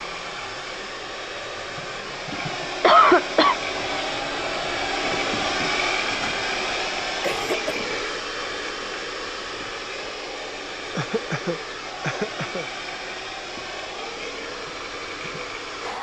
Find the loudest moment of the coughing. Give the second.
3 s.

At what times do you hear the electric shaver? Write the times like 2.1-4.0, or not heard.
not heard.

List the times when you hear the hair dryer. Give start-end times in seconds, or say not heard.
0.0-15.9.